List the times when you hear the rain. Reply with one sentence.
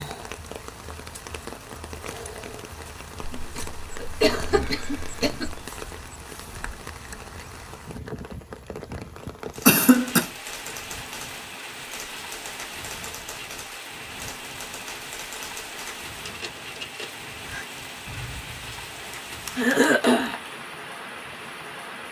You can hear the rain from 0.0 to 22.0 s.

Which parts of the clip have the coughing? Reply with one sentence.
You can hear the coughing from 3.2 to 5.6 s, from 9.7 to 10.3 s and from 19.6 to 20.4 s.